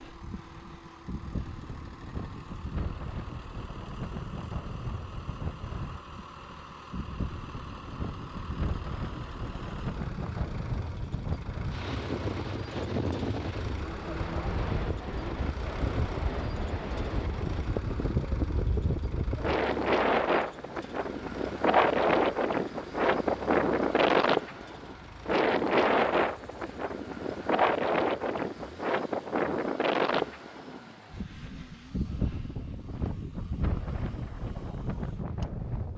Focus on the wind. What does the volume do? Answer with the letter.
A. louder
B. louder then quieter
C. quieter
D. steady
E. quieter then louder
B.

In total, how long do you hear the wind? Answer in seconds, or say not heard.
36 s.